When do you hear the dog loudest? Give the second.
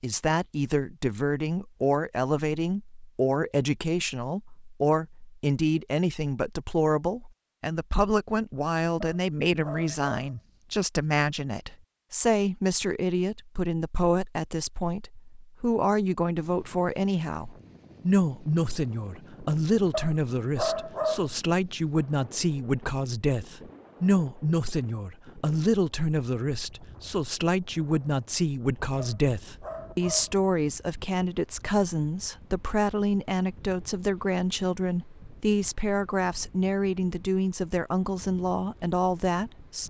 21 s.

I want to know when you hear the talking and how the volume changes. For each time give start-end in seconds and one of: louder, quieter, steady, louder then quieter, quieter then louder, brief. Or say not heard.
0.0-39.8 steady.